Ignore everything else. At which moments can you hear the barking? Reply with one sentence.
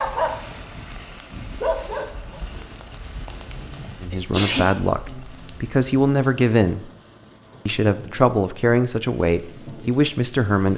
You can hear the barking from 0.0 to 2.4 s.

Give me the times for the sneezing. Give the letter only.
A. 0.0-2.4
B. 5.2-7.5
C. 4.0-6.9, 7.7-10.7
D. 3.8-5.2
D.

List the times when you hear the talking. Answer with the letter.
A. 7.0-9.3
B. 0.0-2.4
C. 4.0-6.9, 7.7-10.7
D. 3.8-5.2
C.